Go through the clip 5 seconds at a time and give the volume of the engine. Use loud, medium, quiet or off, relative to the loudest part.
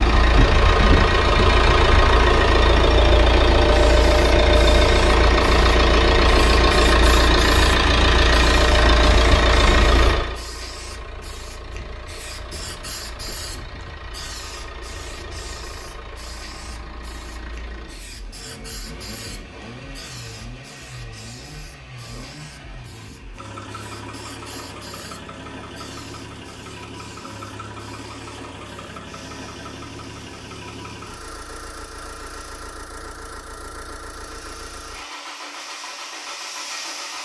loud, loud, quiet, quiet, quiet, quiet, quiet, quiet.